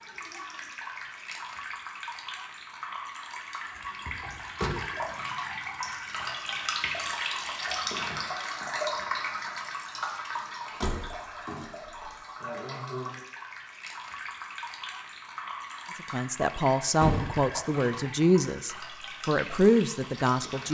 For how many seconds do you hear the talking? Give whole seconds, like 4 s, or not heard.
5 s.